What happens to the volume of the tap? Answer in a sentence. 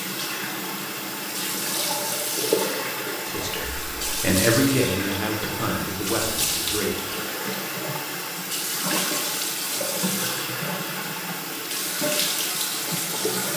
The loudness of the tap stays about the same.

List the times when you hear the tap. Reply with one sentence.
You can hear the tap from 0.0 to 13.5 s.